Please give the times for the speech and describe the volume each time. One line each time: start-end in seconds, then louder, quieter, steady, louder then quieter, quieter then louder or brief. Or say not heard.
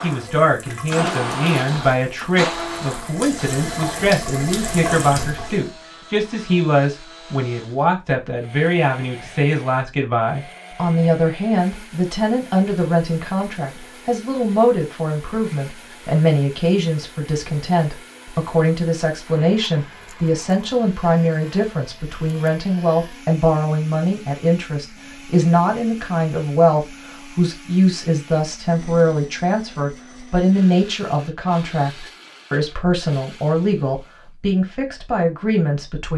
0.0-36.1 steady.